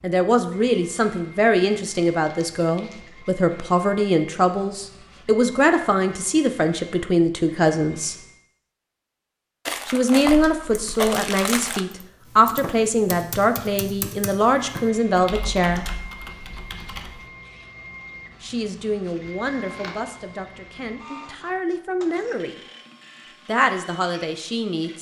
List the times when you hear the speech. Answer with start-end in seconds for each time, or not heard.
0.0-8.2, 9.8-15.8, 18.4-22.6, 23.4-24.9.